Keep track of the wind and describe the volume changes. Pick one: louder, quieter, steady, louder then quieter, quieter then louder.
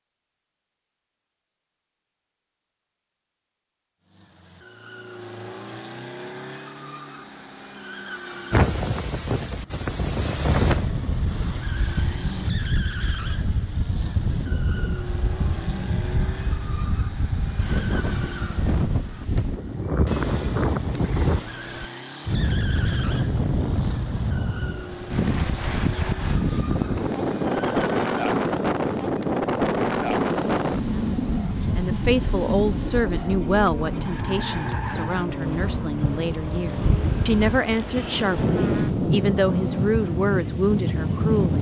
steady.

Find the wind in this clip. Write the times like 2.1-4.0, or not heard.
8.5-41.5.